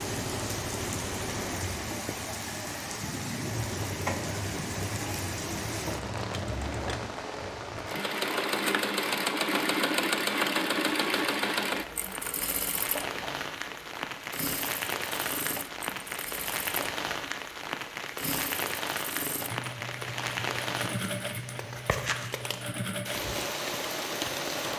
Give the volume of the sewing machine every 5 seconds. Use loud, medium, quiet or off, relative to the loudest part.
medium, loud, loud, medium, medium.